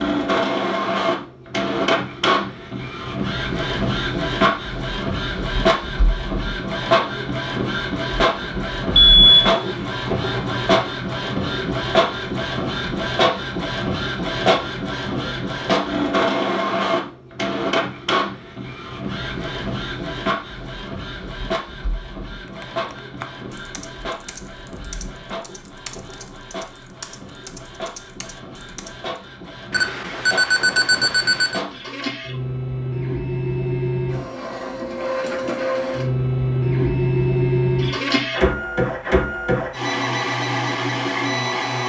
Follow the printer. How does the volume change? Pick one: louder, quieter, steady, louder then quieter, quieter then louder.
quieter then louder.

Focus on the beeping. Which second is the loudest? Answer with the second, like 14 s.
9 s.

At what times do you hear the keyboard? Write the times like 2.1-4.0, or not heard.
22.4-29.1.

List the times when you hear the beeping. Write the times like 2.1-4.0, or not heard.
8.9-10.8, 29.7-31.6.